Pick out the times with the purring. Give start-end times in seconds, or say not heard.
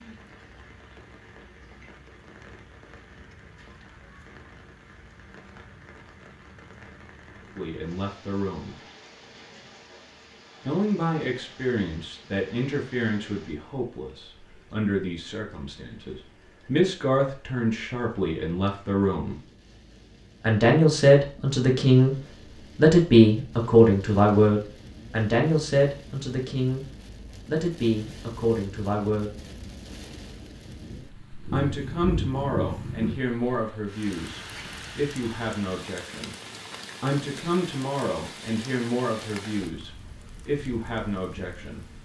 30.6-33.2.